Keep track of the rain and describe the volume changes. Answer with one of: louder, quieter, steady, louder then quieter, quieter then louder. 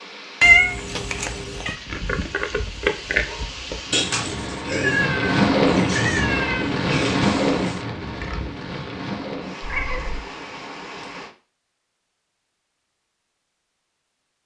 louder then quieter.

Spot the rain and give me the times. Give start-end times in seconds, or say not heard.
0.0-11.3.